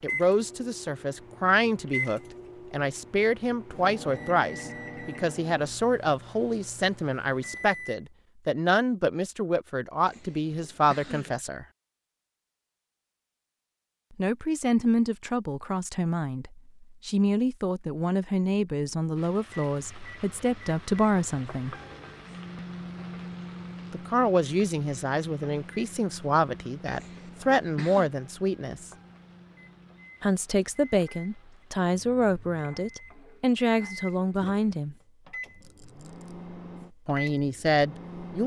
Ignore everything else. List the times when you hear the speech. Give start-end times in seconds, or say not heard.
0.0-11.7, 14.2-21.8, 23.9-28.9, 30.2-35.0, 37.0-38.4.